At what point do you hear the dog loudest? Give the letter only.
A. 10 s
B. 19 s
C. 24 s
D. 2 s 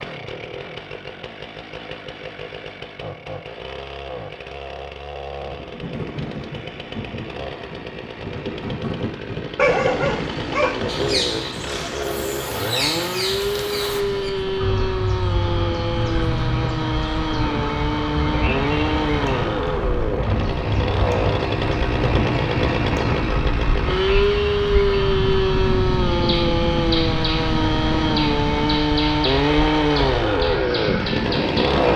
A.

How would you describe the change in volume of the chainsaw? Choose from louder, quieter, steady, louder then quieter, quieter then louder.
louder.